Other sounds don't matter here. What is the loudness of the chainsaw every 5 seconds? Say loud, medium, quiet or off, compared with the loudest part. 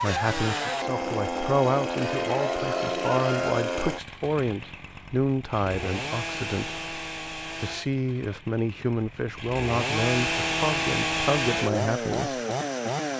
loud, medium, loud.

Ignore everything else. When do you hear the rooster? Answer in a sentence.
You can hear the rooster from 2.0 to 3.5 s.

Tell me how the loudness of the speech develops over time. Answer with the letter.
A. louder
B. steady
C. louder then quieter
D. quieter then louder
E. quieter
B.